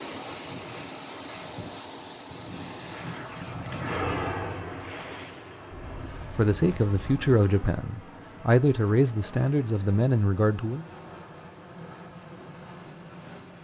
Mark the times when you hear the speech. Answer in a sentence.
You can hear the speech from 6.3 to 10.8 s.